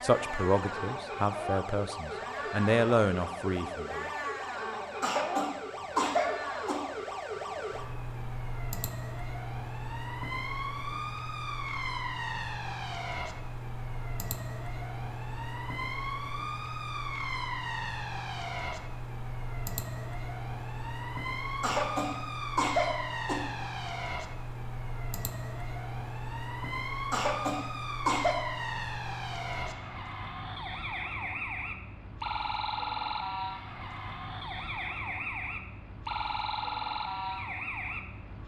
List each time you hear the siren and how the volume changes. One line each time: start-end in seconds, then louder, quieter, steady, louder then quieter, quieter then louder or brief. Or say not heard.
0.0-38.4 steady.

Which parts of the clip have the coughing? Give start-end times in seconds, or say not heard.
5.0-6.8, 21.6-23.5, 27.1-28.4.